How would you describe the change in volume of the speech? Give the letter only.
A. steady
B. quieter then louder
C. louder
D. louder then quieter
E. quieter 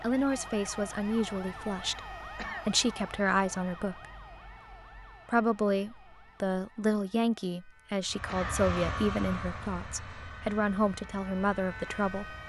A.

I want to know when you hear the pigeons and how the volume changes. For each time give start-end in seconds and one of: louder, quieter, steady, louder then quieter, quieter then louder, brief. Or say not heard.
not heard.